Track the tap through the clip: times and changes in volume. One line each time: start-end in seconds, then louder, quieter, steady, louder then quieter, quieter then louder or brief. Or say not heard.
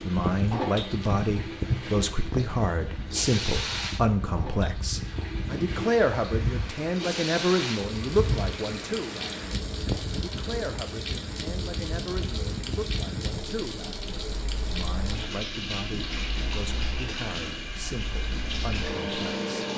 0.0-19.7 steady.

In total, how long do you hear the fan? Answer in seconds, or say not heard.
20 s.